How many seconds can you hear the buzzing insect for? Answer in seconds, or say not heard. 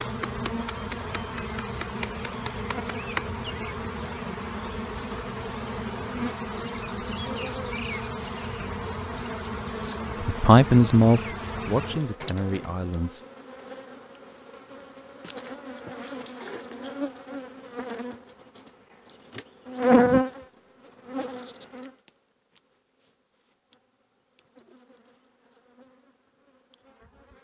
27 s.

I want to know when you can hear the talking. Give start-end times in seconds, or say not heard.
10.2-13.2.